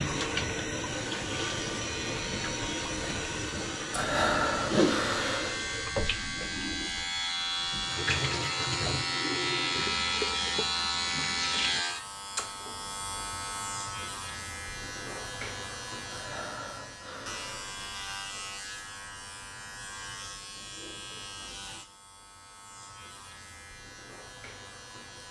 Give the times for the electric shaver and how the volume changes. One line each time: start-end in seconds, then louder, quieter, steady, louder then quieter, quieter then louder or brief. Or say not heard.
0.0-25.2 louder then quieter.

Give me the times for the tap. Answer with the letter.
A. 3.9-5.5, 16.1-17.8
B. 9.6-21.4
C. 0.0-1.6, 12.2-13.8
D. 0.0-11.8
D.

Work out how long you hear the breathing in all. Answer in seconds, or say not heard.
3 s.